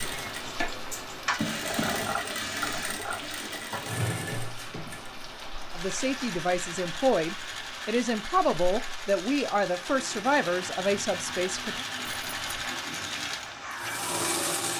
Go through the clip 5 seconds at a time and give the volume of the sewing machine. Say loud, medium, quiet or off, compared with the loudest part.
loud, medium, loud.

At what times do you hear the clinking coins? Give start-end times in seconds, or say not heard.
0.4-1.4, 12.0-12.6.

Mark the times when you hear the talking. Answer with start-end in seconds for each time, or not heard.
5.8-11.8.